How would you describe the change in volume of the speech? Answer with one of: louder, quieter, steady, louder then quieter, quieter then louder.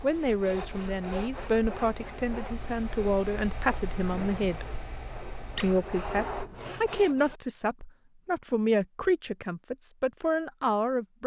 steady.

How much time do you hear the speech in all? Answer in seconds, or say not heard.
10 s.